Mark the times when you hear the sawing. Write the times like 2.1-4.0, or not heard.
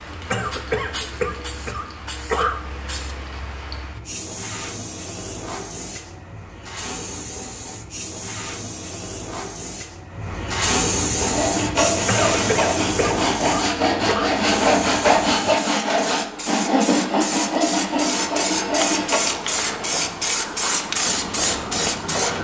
11.2-19.2.